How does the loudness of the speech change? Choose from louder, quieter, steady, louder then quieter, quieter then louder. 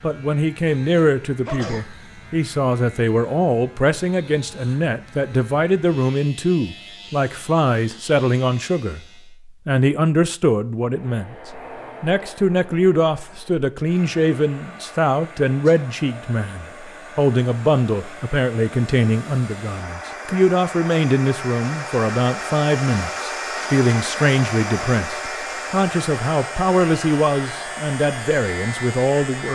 steady.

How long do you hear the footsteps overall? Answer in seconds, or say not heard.
not heard.